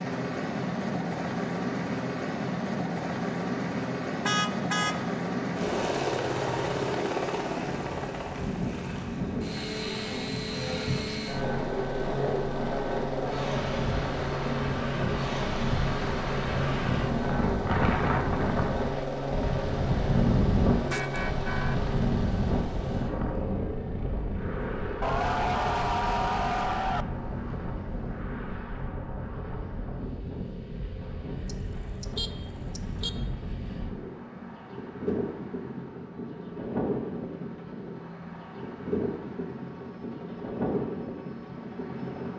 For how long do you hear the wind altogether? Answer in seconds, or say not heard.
35 s.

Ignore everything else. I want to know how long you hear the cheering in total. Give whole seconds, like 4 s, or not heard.
2 s.